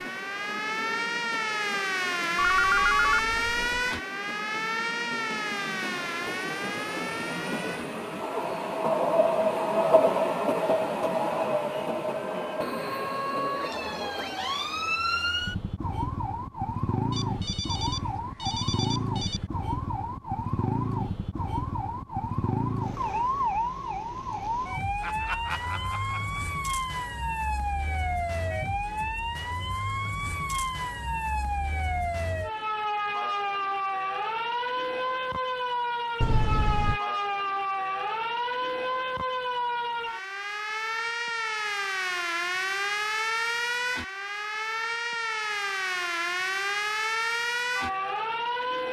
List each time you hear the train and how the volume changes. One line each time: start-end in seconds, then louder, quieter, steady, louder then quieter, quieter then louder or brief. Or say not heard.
0.0-15.1 louder then quieter.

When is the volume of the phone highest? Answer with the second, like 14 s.
3 s.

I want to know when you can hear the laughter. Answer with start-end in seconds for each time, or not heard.
25.0-26.4.